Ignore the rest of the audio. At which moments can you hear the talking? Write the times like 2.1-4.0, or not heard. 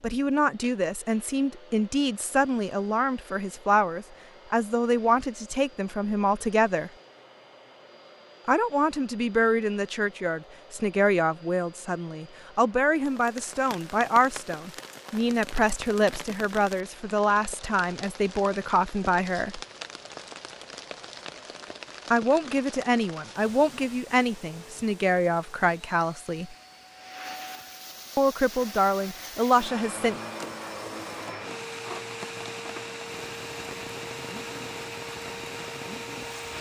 0.0-6.9, 8.4-19.6, 22.1-26.6, 28.1-30.1.